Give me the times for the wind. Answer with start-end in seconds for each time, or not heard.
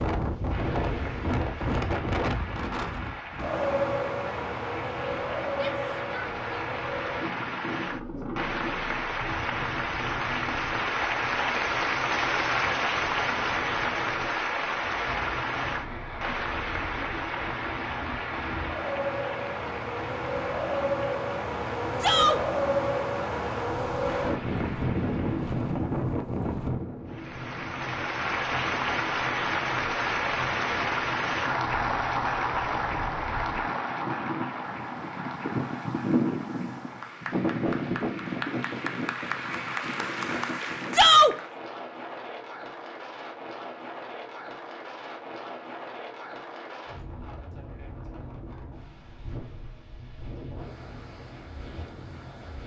0.0-52.6.